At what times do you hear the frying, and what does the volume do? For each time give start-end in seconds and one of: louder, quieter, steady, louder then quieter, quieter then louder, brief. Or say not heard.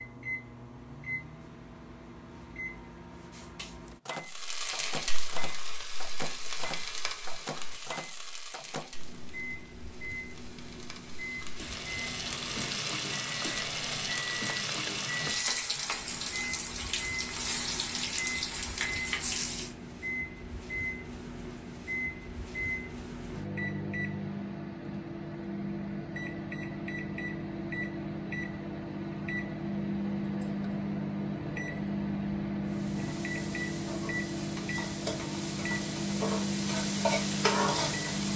4.2-19.8 quieter then louder
32.6-38.3 louder.